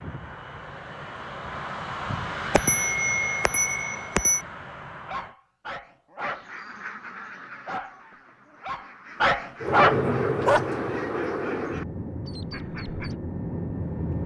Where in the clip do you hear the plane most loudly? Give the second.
10 s.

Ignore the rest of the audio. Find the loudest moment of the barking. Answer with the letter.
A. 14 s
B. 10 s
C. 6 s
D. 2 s
B.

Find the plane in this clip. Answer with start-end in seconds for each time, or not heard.
0.0-5.3, 9.6-14.2.